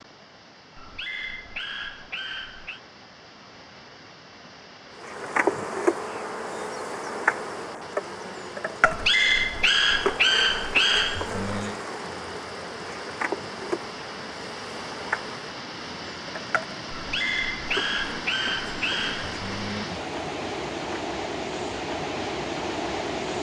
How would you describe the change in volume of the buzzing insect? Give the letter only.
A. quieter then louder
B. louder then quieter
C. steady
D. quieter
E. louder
D.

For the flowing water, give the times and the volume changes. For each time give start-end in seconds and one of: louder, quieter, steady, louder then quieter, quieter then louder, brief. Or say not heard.
0.0-23.3 louder.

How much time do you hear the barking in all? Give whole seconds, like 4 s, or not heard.
8 s.